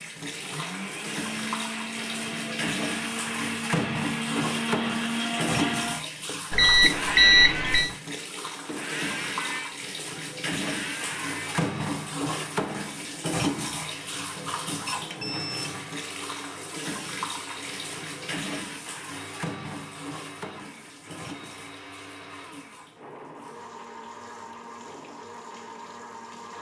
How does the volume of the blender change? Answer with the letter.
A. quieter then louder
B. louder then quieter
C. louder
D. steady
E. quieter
E.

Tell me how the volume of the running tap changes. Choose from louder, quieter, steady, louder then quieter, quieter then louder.
quieter.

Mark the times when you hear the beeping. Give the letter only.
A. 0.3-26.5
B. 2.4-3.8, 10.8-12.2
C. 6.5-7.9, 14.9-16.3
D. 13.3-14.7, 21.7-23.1
C.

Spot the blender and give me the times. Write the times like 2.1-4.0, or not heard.
0.3-26.5.